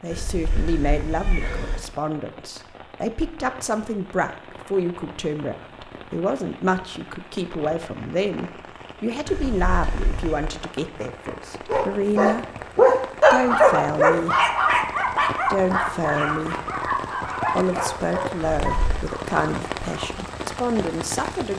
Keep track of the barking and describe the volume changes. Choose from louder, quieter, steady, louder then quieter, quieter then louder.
quieter.